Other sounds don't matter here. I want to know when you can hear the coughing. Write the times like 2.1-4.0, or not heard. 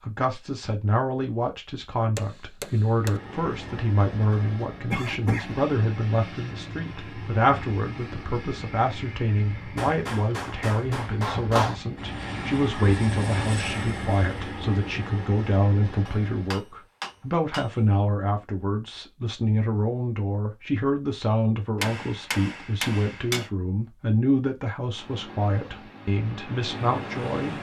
4.3-5.6.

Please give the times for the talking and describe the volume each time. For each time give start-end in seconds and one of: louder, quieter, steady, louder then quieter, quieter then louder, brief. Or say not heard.
0.0-27.5 steady.